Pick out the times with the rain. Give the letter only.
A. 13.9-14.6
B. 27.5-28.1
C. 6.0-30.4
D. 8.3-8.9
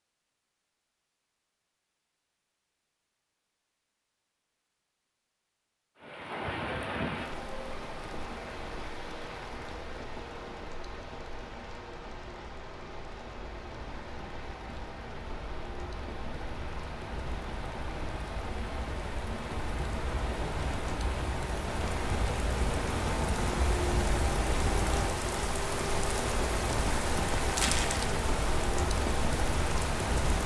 C.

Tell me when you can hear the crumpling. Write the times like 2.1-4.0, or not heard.
27.5-28.1.